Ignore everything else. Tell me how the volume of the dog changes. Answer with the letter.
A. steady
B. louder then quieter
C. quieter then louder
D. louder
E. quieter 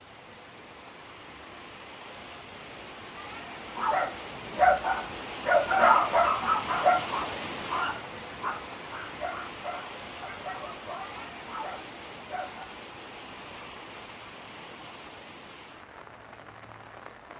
E.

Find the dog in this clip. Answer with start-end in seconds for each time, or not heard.
3.8-12.8.